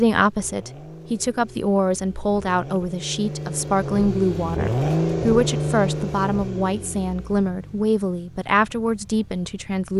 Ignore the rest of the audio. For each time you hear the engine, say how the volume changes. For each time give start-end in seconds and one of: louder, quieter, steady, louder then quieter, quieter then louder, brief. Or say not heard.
0.1-9.9 louder then quieter.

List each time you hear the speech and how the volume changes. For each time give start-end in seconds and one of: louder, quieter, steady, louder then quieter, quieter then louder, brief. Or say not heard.
0.0-9.9 steady.